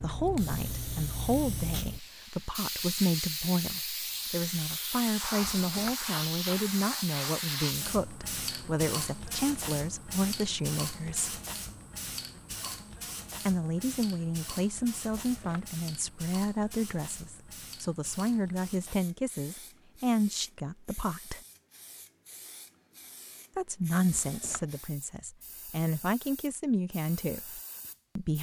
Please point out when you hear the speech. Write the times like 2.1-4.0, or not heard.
0.0-11.4, 13.4-21.4, 23.6-28.3.